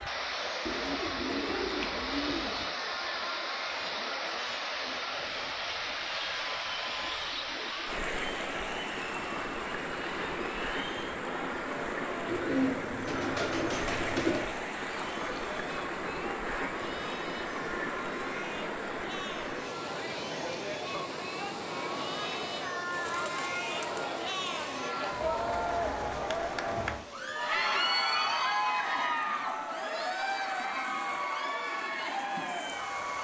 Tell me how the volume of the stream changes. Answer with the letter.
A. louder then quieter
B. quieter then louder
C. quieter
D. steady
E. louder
C.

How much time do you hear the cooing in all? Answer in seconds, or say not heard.
6 s.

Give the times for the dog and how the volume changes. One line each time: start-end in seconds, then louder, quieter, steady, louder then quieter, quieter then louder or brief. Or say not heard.
not heard.